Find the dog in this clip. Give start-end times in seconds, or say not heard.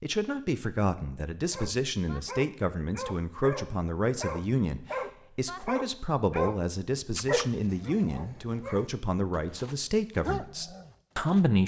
1.5-11.4.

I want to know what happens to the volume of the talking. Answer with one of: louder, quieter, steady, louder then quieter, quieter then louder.
steady.